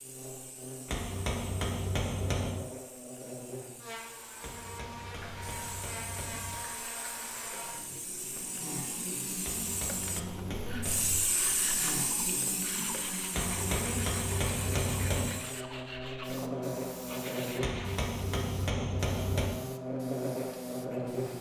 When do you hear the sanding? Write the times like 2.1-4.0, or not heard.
10.6-18.1.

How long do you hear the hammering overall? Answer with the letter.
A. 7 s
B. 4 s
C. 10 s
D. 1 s
C.